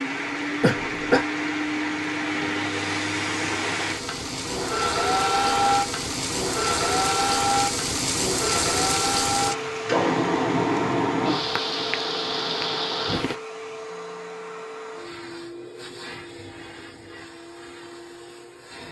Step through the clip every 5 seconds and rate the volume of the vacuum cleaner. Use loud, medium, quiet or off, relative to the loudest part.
medium, loud, medium, quiet.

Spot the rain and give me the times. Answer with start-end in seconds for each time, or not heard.
0.0-13.4.